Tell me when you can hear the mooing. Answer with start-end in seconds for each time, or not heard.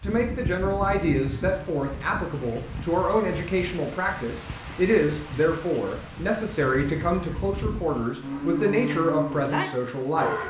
0.0-10.4.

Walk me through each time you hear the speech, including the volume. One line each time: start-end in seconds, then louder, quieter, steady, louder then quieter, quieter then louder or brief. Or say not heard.
0.0-10.3 steady.